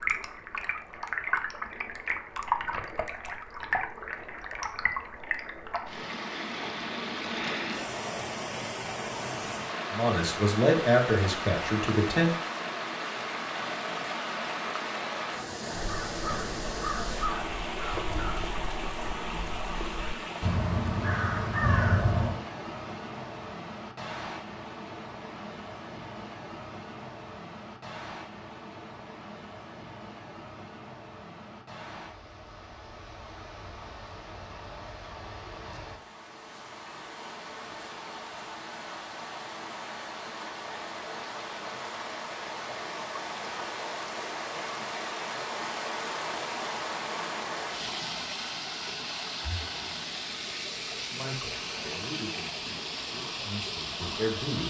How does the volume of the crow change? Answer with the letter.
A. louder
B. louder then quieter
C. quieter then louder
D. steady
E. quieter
C.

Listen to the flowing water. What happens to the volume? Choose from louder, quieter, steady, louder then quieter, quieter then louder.
quieter then louder.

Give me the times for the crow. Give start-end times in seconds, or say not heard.
15.8-22.4.